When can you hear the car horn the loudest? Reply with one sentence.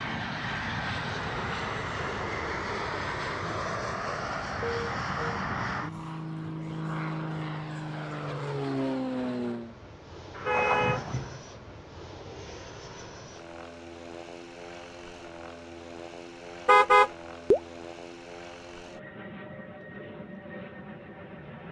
The loudest moment of the car horn is at 17 seconds.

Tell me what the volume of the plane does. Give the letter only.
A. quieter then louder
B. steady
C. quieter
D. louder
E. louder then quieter
C.